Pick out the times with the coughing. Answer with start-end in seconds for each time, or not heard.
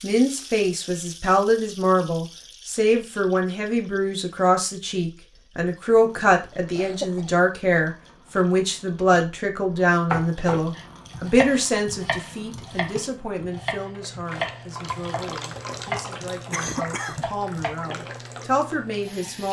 6.8-7.3, 16.5-17.2.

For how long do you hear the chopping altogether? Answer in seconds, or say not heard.
8 s.